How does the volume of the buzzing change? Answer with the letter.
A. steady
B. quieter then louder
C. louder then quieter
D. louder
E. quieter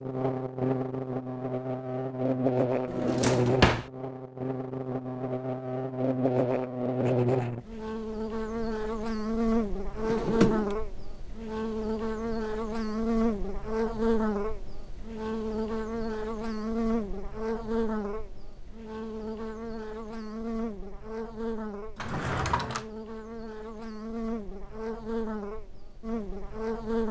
E.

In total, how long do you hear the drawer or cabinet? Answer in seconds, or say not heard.
3 s.